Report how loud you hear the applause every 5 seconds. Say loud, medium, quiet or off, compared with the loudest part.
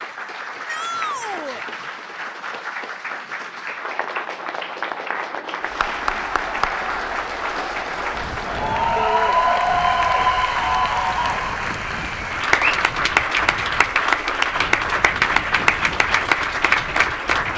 medium, loud, loud, loud.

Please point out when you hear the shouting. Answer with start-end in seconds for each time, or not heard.
0.7-1.6, 8.9-9.3.